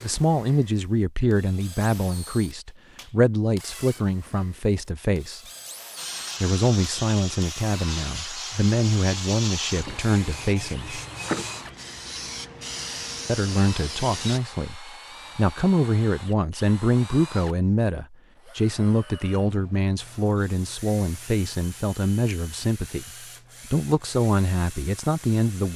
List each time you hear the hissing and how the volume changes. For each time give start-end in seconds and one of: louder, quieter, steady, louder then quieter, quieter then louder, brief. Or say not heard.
6.0-14.4 steady.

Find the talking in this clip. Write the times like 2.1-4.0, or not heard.
0.0-5.4, 6.4-11.0, 13.2-23.1, 23.7-25.7.